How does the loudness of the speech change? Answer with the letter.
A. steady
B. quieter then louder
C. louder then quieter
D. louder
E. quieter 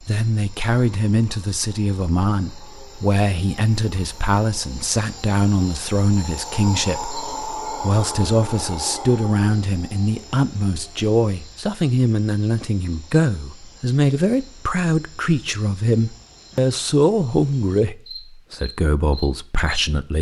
A.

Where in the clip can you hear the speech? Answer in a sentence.
You can hear the speech from 0.0 to 20.1 s.